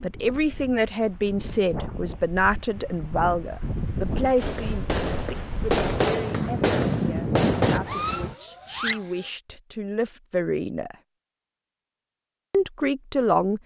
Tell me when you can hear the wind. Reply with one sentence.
You can hear the wind from 0.0 to 8.3 s.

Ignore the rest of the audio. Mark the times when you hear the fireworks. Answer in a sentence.
You can hear the fireworks from 4.3 to 9.3 s.